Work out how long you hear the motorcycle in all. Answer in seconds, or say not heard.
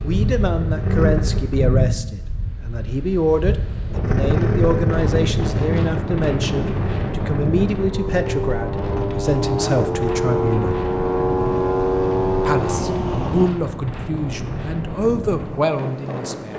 11 s.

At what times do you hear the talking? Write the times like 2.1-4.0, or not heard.
0.0-10.8, 12.4-16.5.